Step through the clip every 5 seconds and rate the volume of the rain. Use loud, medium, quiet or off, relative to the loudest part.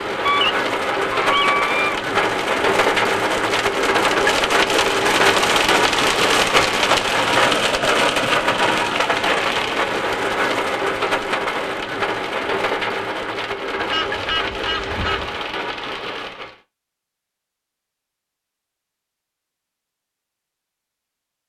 loud, loud, medium, medium, off.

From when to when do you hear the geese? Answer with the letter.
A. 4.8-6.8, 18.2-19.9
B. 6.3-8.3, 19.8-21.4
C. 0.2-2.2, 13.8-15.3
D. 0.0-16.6
C.